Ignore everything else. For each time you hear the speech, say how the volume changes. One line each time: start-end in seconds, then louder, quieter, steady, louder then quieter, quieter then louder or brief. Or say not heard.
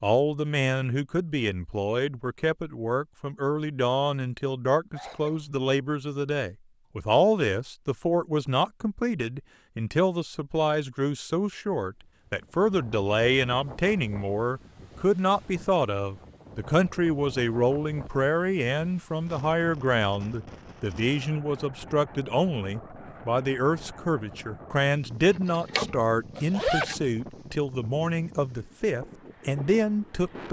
0.0-30.4 steady.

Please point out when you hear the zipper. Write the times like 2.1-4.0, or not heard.
25.3-26.9.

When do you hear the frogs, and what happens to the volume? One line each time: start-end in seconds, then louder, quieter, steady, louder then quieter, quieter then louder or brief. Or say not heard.
not heard.